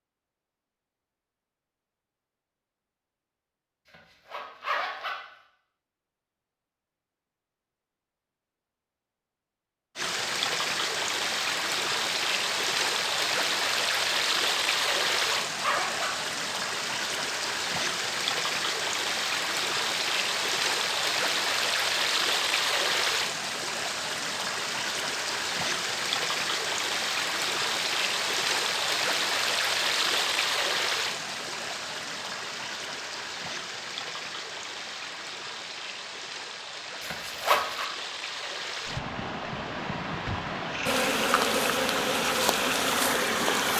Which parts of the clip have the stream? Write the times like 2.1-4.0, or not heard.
9.9-43.7.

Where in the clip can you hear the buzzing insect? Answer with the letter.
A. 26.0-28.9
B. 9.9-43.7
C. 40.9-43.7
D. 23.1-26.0
C.